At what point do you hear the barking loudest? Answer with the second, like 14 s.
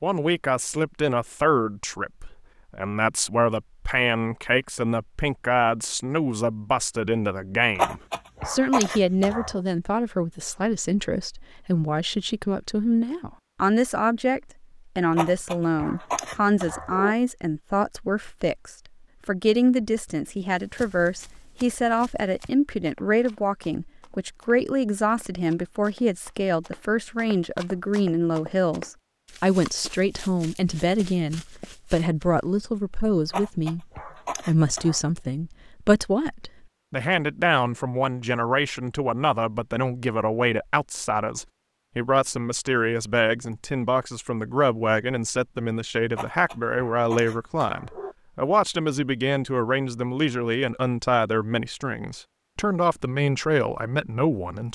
8 s.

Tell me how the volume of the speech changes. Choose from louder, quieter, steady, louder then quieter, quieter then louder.
steady.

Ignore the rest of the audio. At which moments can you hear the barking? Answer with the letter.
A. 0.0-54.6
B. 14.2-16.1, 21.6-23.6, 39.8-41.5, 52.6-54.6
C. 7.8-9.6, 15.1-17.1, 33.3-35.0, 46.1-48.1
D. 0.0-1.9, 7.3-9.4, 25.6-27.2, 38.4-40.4
C.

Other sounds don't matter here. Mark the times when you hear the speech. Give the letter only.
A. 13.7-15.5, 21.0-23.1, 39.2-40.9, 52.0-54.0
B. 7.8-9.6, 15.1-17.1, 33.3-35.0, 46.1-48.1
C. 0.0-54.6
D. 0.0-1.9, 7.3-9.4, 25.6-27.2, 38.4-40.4
C.